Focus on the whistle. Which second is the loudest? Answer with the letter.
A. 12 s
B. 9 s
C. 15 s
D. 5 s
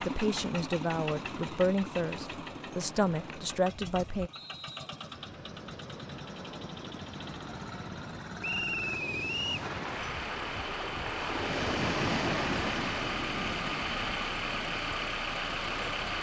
B.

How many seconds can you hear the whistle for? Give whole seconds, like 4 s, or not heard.
2 s.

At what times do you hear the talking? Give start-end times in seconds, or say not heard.
0.0-4.3.